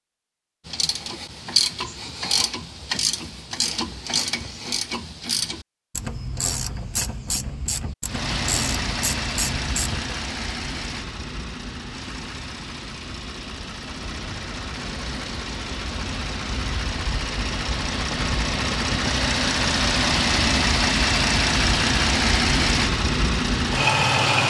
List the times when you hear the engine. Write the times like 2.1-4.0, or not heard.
8.1-24.4.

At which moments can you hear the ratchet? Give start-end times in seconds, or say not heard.
0.7-10.2.